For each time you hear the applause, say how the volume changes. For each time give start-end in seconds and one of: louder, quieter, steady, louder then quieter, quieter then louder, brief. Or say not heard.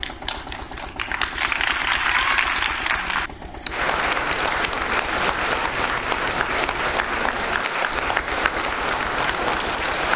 0.0-10.1 steady.